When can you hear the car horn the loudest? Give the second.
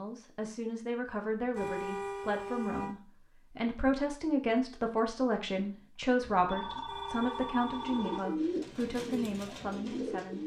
2 s.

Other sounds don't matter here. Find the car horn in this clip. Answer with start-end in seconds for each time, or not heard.
1.5-3.0, 6.8-8.3.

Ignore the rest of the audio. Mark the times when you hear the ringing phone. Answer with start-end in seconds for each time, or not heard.
6.2-8.2.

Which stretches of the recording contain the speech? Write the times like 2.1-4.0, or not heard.
0.0-10.4.